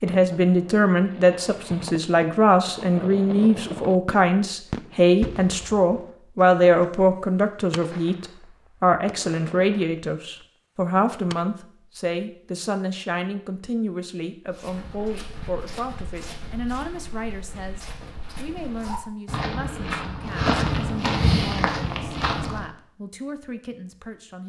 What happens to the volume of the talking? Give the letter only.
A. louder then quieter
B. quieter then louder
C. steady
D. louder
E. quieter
E.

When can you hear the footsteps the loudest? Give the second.
21 s.